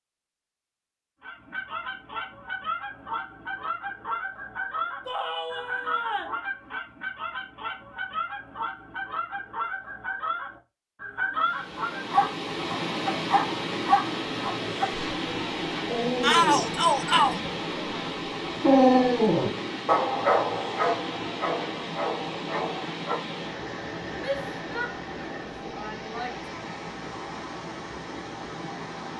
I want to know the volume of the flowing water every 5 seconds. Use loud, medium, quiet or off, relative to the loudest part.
off, off, loud, loud, loud, medium.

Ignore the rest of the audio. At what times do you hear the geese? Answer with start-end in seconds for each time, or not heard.
1.2-12.1.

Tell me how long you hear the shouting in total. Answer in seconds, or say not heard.
5 s.